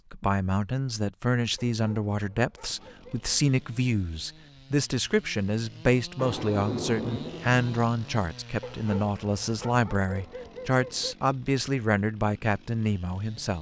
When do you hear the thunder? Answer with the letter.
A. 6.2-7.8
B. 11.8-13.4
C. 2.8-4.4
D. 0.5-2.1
A.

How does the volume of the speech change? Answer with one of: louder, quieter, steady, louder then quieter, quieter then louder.
steady.